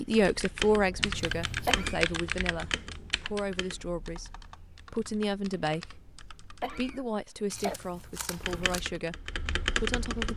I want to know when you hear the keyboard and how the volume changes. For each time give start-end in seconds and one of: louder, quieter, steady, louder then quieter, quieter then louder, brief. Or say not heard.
0.0-7.0 quieter
8.3-10.3 brief.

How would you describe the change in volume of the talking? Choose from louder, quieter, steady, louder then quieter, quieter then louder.
quieter.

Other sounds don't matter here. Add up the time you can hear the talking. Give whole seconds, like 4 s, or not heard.
10 s.